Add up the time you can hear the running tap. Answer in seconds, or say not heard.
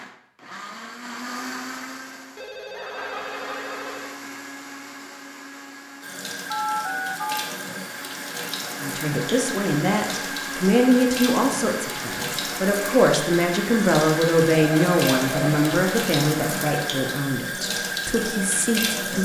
13 s.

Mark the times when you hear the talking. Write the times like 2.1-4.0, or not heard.
8.8-19.2.